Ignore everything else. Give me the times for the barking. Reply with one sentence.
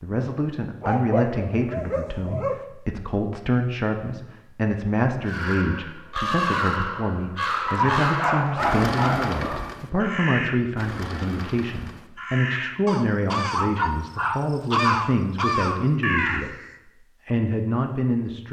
The barking can be heard from 0.8 to 2.6 s, from 7.7 to 9.8 s and from 13.5 to 15.1 s.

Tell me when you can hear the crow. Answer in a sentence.
You can hear the crow from 5.2 to 16.8 s.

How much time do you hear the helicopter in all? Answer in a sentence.
The helicopter can't be heard in this clip.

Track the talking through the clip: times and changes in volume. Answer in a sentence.
You can hear the talking from 0.0 to 16.6 s, at a steady volume; and briefly from 17.2 to 18.4 s.